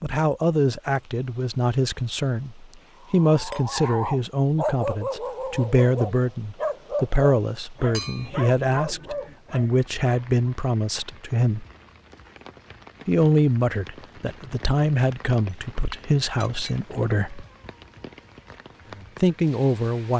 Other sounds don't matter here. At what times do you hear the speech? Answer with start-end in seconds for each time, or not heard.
0.0-11.7, 13.1-17.4, 19.2-20.1.